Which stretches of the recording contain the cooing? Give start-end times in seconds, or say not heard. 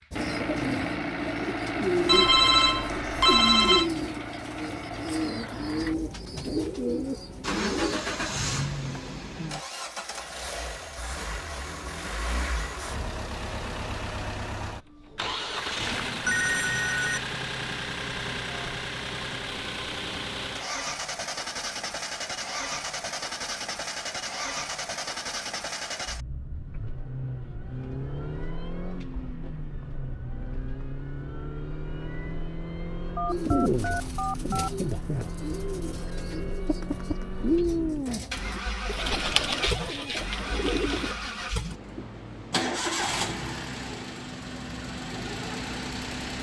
0.1-8.0, 33.2-41.1.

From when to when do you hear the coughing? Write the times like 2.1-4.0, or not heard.
not heard.